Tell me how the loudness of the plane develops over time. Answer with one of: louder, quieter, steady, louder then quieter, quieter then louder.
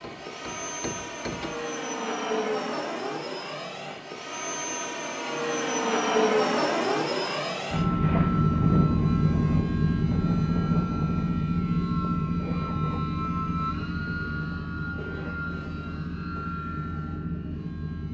louder then quieter.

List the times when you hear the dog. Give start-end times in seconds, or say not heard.
not heard.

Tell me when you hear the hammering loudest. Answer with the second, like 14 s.
1 s.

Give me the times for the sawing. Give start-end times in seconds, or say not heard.
not heard.